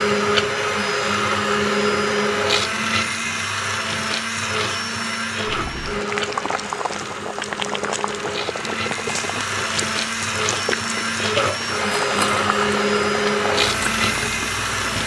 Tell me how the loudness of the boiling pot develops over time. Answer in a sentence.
The loudness of the boiling pot stays about the same.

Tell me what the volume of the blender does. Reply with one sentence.
The volume of the blender goes down, then up.